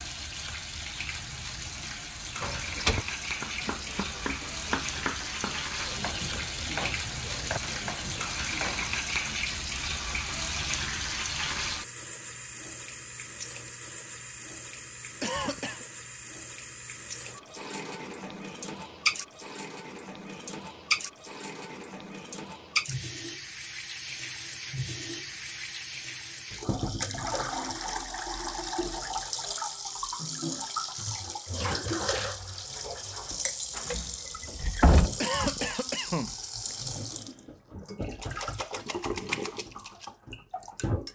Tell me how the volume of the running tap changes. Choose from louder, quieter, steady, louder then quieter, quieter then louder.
steady.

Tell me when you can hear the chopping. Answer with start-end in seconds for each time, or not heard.
3.4-8.9.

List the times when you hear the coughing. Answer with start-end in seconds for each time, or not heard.
15.2-15.8, 35.2-36.8.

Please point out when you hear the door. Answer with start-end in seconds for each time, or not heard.
2.4-3.0, 33.3-35.1.